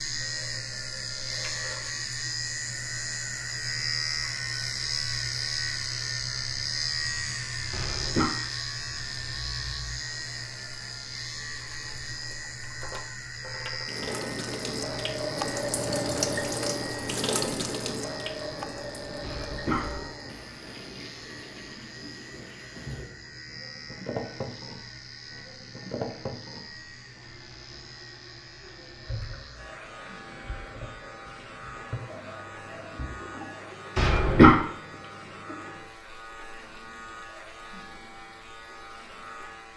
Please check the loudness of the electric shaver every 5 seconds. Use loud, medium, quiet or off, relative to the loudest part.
loud, loud, medium, medium, quiet, quiet, quiet, quiet.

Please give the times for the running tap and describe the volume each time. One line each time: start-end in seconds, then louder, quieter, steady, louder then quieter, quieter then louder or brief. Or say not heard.
0.1-39.7 louder then quieter.